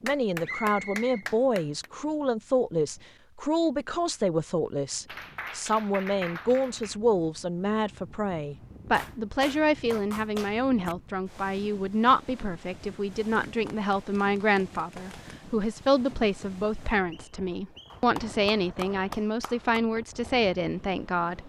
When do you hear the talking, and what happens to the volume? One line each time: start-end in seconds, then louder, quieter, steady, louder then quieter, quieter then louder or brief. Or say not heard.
0.0-21.4 steady.